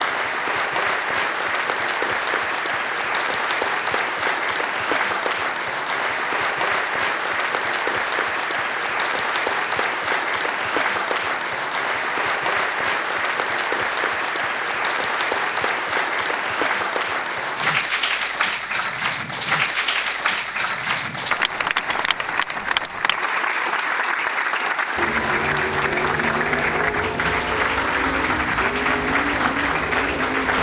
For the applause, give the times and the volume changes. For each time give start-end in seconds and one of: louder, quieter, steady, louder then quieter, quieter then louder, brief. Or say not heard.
0.0-30.5 steady.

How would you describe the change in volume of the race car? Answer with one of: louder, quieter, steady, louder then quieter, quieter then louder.
steady.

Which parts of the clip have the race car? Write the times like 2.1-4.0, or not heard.
24.9-30.5.